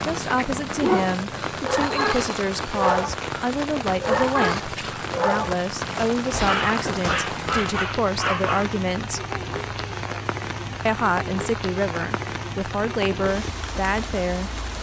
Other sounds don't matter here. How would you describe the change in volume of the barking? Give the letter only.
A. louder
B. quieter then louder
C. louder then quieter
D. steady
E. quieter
D.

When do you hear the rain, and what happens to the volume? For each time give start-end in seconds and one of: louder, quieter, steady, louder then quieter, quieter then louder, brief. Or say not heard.
0.0-14.7 steady.